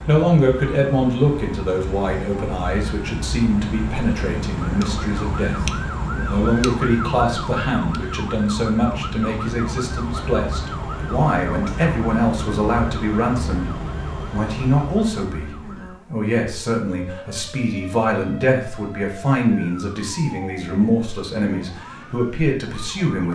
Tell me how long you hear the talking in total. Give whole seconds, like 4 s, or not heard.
23 s.